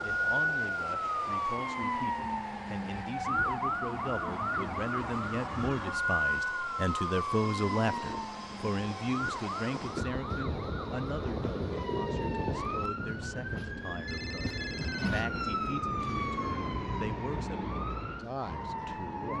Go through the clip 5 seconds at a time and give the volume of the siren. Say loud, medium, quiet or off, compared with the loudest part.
loud, loud, medium, loud.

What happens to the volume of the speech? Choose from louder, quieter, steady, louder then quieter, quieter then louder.
louder then quieter.